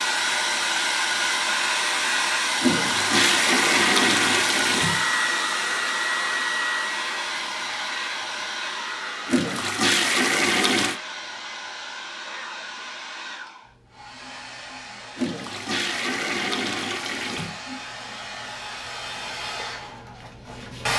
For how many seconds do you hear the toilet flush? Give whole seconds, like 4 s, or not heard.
7 s.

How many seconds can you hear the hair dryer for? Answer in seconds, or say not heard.
21 s.